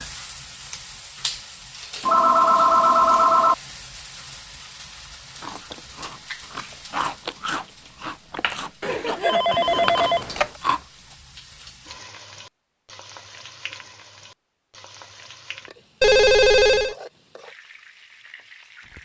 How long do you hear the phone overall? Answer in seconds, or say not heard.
4 s.